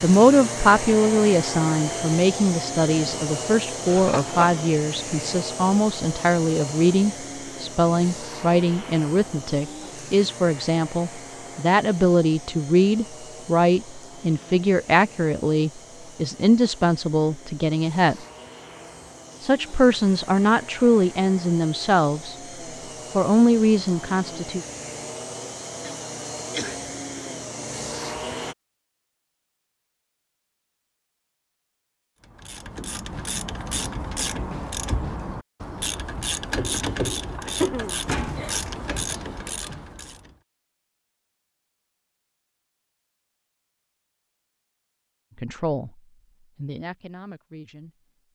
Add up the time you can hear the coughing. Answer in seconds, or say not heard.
3 s.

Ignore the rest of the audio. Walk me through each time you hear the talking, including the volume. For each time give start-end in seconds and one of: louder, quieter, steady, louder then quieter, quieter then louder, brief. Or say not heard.
0.0-18.2 steady
19.4-22.4 brief
23.1-24.6 brief
45.4-47.9 brief.